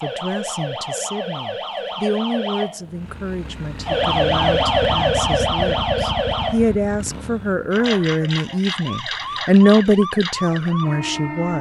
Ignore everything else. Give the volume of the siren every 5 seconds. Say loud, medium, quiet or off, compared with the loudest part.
loud, loud, medium.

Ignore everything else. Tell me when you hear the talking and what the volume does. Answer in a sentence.
The talking can be heard from 0.0 to 11.5 s, getting louder.